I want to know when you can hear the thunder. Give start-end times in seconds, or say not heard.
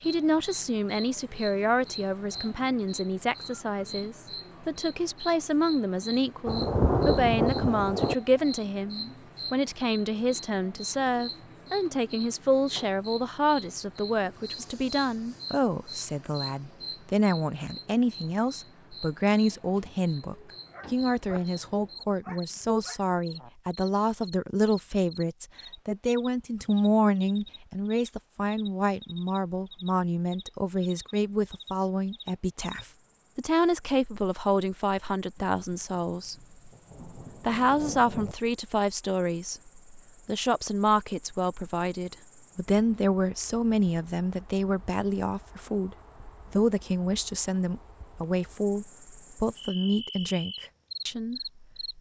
6.5-8.2, 35.4-38.4.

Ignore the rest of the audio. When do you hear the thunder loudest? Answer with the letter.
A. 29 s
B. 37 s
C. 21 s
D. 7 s
D.